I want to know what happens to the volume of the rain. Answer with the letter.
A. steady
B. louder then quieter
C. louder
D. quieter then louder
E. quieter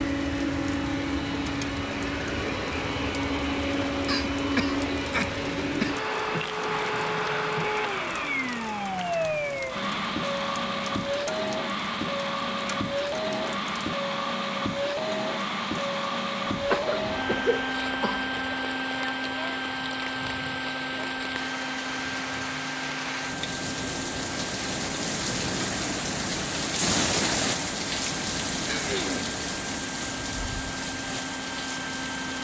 C.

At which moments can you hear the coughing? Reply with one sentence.
The coughing can be heard from 4.0 to 6.0 s, from 16.5 to 18.2 s and from 28.6 to 29.4 s.